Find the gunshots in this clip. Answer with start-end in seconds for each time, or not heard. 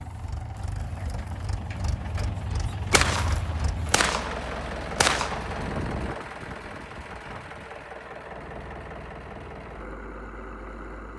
2.9-5.6.